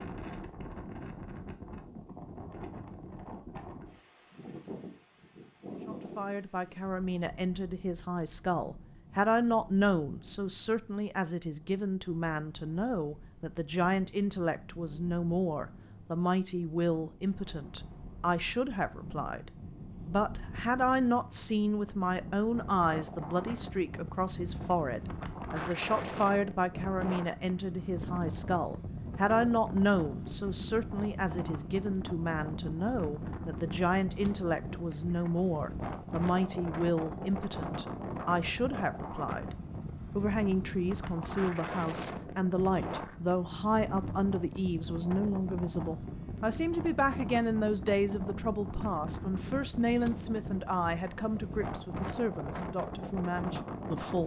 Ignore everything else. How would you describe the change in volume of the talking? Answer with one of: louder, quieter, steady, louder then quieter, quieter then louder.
steady.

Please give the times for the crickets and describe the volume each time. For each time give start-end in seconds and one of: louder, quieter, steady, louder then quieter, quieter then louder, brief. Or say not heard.
not heard.